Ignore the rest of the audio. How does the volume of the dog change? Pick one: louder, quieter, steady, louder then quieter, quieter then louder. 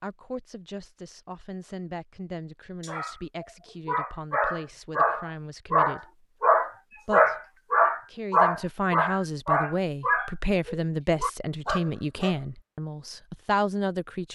louder then quieter.